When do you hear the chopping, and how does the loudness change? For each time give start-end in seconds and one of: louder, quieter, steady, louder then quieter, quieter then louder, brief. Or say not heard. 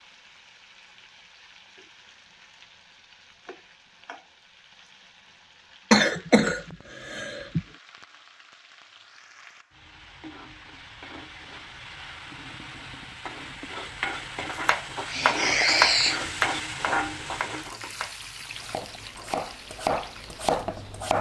14.7-21.1 quieter then louder.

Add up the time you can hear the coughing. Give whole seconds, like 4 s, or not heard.
3 s.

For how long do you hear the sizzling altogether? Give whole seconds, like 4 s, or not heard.
21 s.